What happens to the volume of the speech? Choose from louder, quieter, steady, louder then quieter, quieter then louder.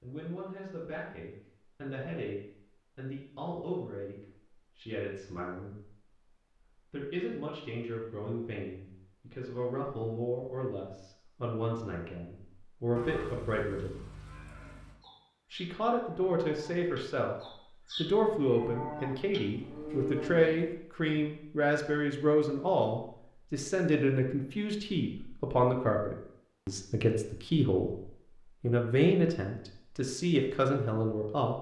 louder.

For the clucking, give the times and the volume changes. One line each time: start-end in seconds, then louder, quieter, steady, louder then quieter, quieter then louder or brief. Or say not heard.
not heard.